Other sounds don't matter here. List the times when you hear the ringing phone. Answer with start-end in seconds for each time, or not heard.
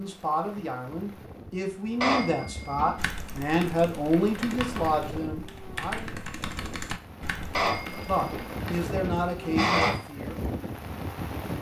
2.0-3.0, 7.5-10.0.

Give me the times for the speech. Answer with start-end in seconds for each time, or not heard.
0.0-6.2, 8.1-10.4.